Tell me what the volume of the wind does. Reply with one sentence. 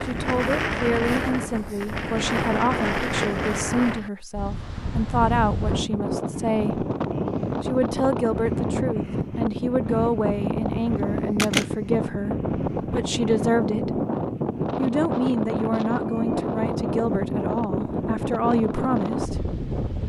The volume of the wind stays about the same.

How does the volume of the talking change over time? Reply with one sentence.
The loudness of the talking stays about the same.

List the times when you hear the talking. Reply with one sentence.
The talking can be heard from 0.0 to 6.8 s, from 7.6 to 14.0 s and from 14.8 to 19.4 s.